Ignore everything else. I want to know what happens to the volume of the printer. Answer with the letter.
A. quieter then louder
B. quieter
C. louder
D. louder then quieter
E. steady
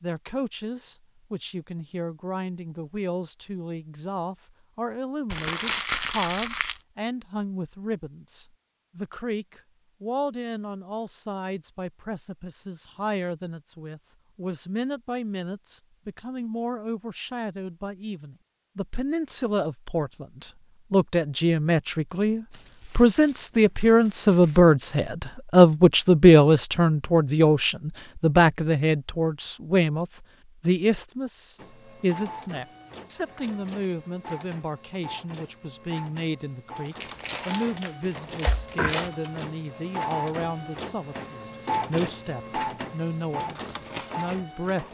C.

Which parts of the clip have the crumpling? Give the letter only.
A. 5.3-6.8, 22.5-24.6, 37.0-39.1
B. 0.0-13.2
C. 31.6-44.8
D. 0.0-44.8
A.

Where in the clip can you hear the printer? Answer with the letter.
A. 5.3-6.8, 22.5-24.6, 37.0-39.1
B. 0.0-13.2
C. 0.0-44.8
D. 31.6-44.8
D.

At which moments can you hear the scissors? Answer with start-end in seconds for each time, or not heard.
not heard.